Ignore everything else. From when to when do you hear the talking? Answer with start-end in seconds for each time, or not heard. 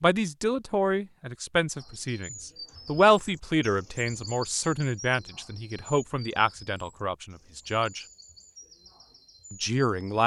0.0-8.1, 9.5-10.2.